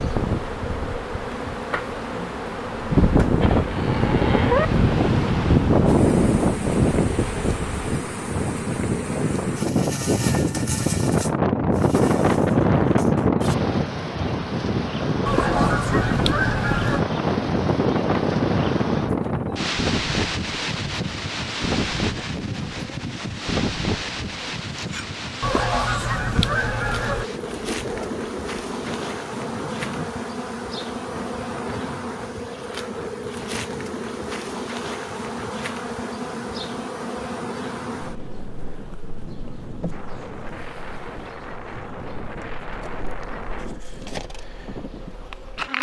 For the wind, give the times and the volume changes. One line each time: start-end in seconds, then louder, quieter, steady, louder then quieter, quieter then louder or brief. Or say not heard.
0.0-45.7 quieter.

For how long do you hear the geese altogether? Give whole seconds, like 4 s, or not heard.
4 s.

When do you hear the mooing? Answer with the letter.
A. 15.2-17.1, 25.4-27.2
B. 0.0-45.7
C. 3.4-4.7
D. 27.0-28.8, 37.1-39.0
C.